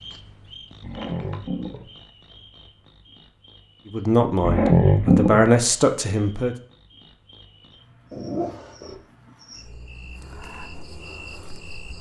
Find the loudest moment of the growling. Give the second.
5 s.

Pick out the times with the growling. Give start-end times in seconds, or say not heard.
0.8-1.9, 4.4-5.5, 8.1-9.0.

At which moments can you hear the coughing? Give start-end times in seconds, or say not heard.
not heard.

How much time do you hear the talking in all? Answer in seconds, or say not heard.
3 s.